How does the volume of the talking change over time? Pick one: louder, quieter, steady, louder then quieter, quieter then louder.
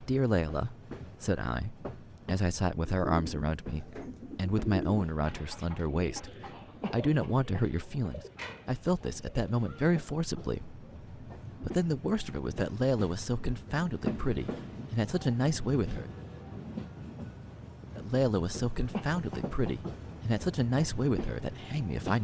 steady.